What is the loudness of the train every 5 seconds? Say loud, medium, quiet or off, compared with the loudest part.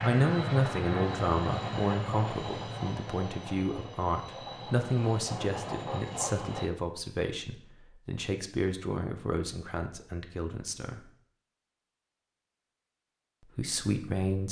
loud, loud, off.